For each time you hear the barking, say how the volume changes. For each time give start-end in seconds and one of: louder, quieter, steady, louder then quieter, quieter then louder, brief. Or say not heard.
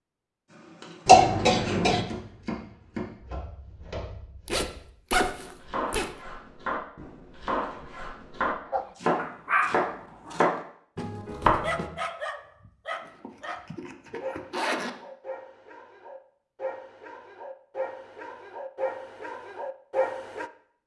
8.7-20.5 quieter then louder.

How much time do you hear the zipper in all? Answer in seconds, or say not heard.
4 s.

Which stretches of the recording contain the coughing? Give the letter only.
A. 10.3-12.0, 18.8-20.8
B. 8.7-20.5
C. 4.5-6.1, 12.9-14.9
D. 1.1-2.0
D.